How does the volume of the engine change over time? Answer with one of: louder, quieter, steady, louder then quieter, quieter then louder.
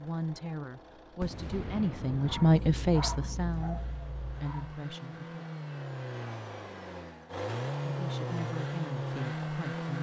louder.